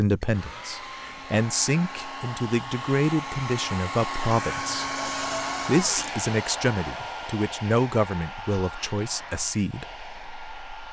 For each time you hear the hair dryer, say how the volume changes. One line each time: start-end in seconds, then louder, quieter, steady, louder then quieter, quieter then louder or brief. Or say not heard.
0.1-10.8 louder then quieter.